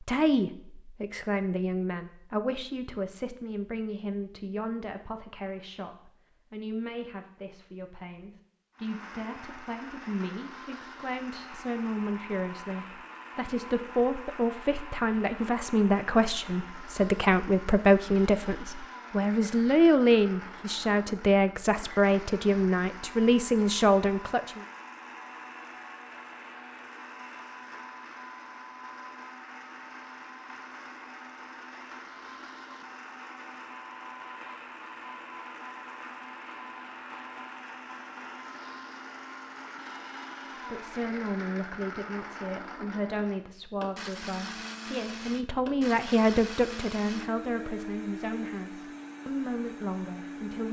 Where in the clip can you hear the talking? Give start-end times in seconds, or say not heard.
0.0-24.6, 40.7-50.6.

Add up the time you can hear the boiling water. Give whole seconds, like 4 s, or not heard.
not heard.